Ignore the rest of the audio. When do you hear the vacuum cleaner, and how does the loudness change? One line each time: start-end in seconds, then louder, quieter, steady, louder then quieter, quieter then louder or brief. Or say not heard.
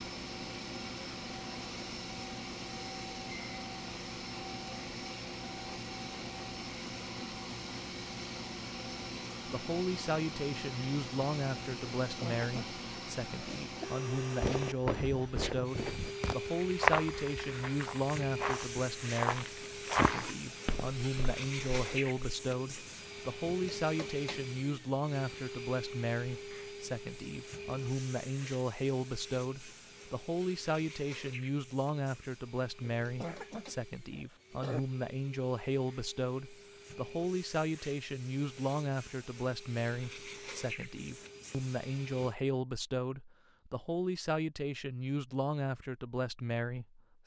0.0-42.4 quieter.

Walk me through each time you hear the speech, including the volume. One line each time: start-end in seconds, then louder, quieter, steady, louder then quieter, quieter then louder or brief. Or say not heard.
9.4-47.2 steady.